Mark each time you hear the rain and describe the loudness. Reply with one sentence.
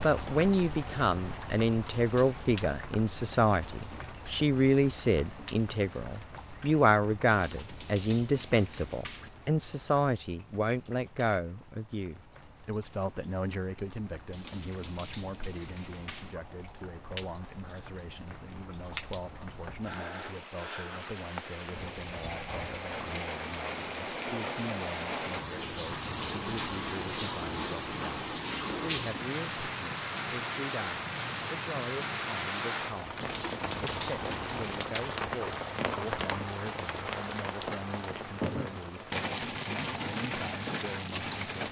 The rain can be heard from 0.0 to 41.6 s, getting quieter then louder.